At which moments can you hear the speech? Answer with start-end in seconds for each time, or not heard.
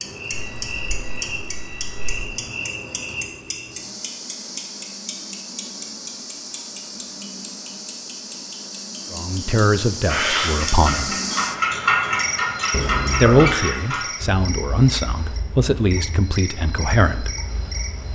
9.1-11.2, 13.2-17.3.